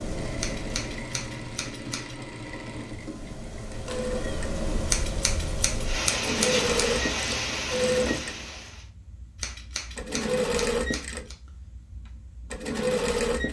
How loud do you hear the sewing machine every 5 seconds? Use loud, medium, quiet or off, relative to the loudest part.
medium, loud, loud.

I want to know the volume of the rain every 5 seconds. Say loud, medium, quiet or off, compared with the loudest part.
medium, loud, off.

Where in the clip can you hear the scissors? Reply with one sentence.
You can hear the scissors from 0.4 to 2.1 s, from 4.8 to 6.7 s and from 9.4 to 11.3 s.